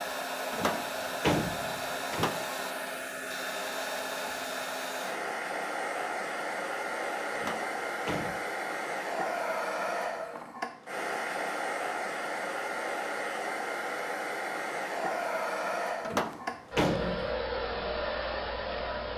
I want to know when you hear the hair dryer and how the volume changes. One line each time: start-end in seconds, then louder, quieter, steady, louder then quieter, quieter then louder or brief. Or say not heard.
0.0-19.1 steady.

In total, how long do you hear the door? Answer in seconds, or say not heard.
4 s.